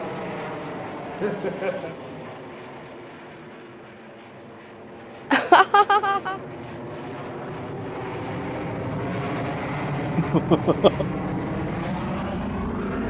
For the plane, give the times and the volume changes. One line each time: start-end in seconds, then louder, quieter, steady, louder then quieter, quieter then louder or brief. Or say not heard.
0.0-13.0 quieter then louder.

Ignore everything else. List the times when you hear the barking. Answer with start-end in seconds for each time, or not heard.
not heard.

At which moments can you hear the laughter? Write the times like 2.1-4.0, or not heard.
1.1-1.9, 5.3-6.3, 10.2-11.1.